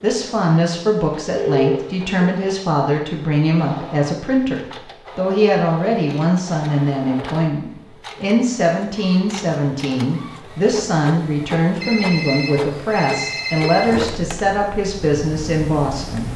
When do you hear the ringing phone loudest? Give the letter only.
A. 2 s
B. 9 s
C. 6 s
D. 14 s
A.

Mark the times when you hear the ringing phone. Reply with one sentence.
You can hear the ringing phone from 1.4 to 2.1 s and from 11.8 to 13.9 s.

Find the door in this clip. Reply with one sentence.
You can't hear the door here.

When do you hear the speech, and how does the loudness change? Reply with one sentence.
The speech can be heard from 0.0 to 16.3 s, at a steady volume.